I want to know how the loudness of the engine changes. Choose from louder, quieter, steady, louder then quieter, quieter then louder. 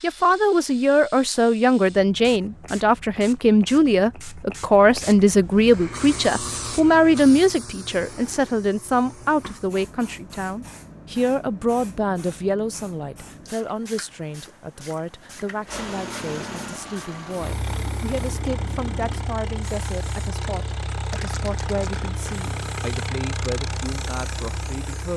steady.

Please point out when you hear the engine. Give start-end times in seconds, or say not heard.
15.7-25.1.